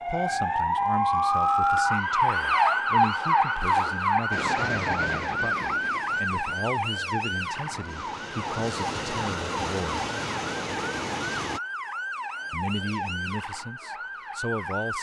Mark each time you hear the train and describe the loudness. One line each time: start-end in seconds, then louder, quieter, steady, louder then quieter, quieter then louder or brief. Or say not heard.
4.3-11.6 quieter then louder.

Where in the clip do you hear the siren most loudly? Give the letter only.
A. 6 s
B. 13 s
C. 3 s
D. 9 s
C.